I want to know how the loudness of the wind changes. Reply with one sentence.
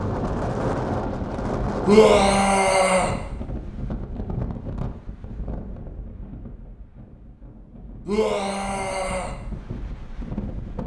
The loudness of the wind goes down, then up.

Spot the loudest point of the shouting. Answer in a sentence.
The loudest moment of the shouting is at 2 seconds.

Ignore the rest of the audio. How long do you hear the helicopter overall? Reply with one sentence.
The helicopter can't be heard in this clip.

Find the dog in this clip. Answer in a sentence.
The dog can't be heard in this clip.